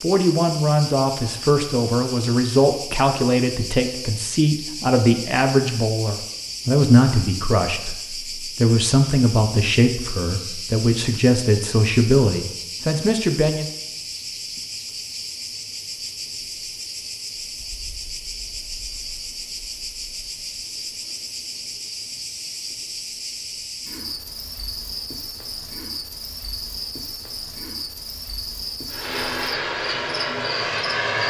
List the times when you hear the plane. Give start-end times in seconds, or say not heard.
28.9-31.2.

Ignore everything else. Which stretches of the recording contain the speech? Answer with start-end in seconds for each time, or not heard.
0.0-13.7.